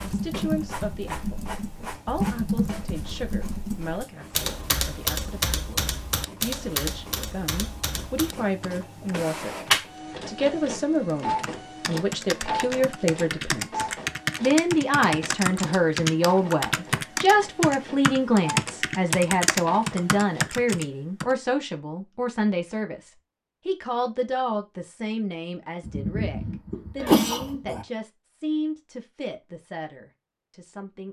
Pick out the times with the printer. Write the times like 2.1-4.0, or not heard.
0.0-20.6.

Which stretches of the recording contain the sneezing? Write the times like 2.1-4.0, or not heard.
25.8-27.9.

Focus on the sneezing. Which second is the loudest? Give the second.
27 s.